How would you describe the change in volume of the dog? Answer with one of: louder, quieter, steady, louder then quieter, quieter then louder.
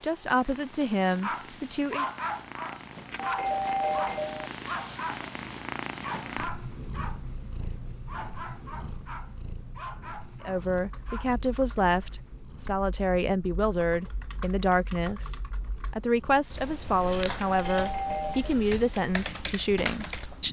quieter.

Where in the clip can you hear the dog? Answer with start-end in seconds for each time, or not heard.
1.2-5.2, 6.0-11.2.